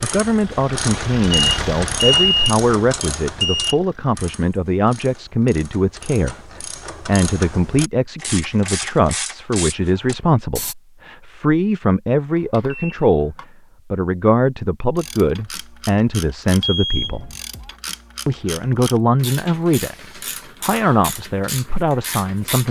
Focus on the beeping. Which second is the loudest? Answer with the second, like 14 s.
2 s.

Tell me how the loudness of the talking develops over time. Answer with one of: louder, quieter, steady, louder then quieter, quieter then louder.
steady.